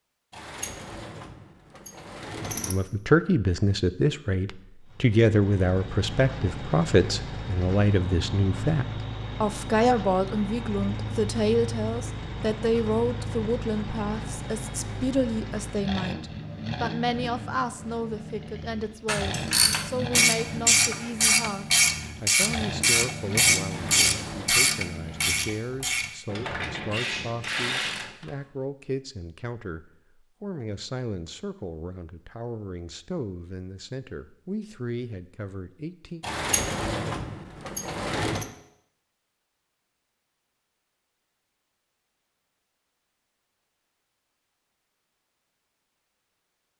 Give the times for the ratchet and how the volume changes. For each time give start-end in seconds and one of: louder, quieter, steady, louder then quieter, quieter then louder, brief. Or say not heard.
19.1-28.3 quieter.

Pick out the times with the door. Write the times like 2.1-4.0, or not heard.
0.3-2.8, 23.7-24.6, 36.2-38.5.